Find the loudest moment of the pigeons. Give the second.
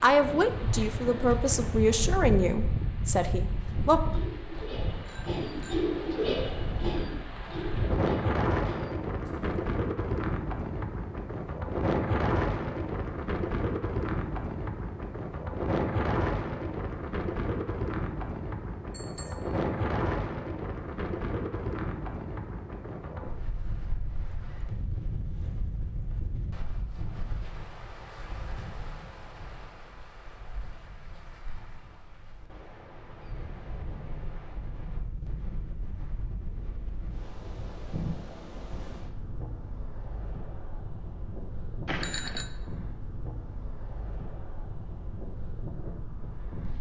6 s.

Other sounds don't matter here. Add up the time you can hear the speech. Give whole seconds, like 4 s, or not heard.
4 s.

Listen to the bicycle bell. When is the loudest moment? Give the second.
42 s.